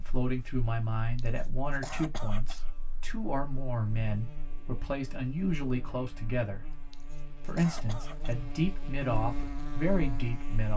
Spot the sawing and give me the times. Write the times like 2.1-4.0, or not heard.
not heard.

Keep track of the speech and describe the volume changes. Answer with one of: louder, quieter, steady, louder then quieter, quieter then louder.
steady.